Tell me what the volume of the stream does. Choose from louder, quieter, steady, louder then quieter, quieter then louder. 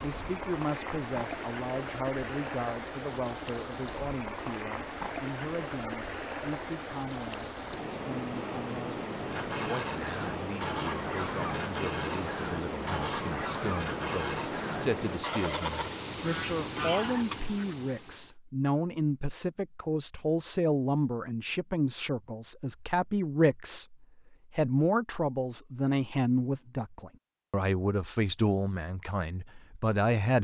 steady.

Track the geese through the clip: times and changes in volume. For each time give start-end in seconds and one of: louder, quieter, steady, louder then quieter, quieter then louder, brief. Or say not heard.
9.2-17.8 steady.